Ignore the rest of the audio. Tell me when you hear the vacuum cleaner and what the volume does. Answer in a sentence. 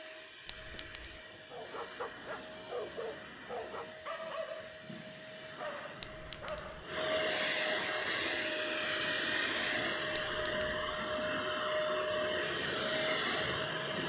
You can hear the vacuum cleaner from 0.0 to 14.0 s, getting louder.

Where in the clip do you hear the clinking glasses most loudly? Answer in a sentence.
The volume of the clinking glasses peaks at 6 seconds.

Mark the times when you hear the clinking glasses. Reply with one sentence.
You can hear the clinking glasses from 0.5 to 1.2 s, from 6.0 to 6.8 s and from 10.2 to 10.8 s.